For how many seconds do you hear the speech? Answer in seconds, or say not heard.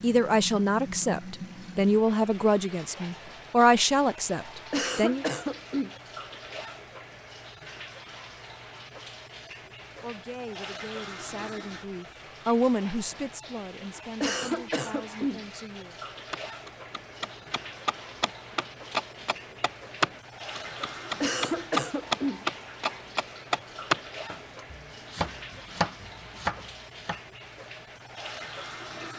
11 s.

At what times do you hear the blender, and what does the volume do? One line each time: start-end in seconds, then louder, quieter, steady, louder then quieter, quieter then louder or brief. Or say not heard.
not heard.